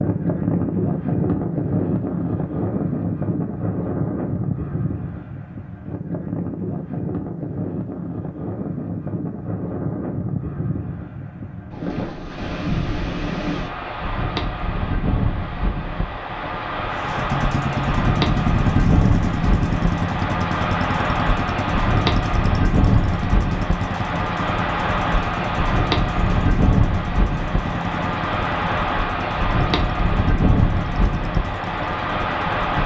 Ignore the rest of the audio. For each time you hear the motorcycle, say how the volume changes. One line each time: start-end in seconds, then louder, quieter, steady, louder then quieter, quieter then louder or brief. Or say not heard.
16.9-32.8 quieter.